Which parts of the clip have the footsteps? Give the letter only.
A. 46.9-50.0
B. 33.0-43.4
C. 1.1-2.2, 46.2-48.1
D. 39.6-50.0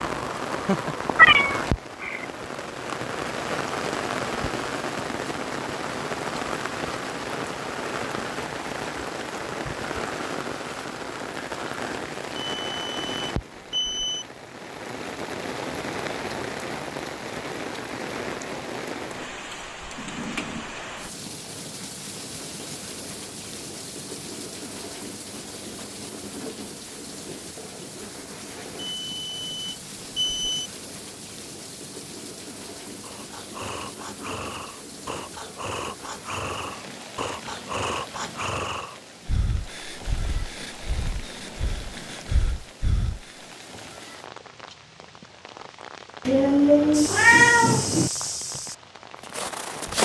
A.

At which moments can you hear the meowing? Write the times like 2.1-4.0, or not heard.
1.1-2.2, 46.2-48.1.